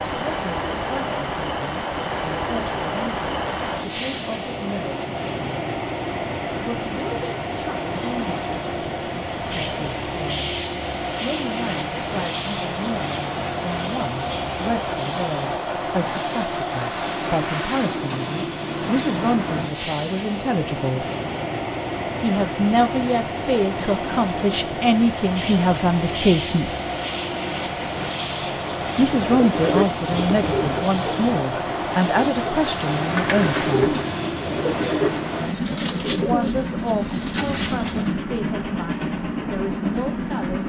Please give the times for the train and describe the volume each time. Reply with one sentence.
You can hear the train from 0.0 to 40.6 s, at a steady volume.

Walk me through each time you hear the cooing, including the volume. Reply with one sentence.
The cooing can be heard from 29.0 to 38.1 s, getting quieter then louder.